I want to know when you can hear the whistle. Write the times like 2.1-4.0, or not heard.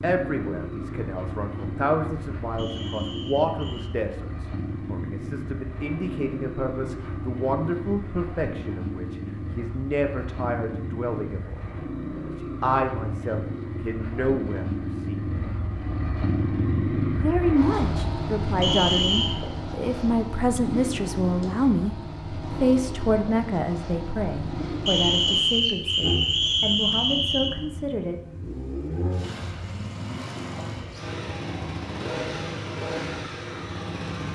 2.5-4.0, 18.6-19.4, 24.9-27.6.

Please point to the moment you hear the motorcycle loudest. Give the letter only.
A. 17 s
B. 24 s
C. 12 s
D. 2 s
A.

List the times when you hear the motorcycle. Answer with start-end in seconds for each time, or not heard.
0.0-34.3.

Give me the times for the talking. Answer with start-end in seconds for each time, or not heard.
0.0-15.2, 17.1-21.9, 22.6-28.1.